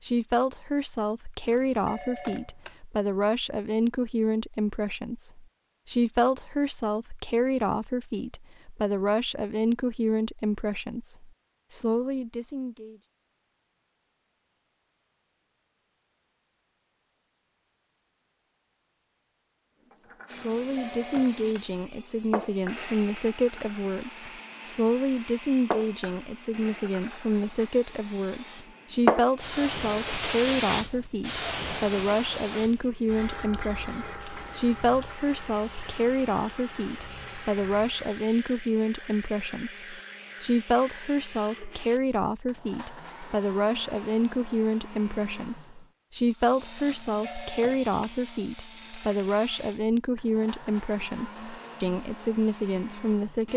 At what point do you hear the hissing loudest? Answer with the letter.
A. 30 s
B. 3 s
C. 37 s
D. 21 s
A.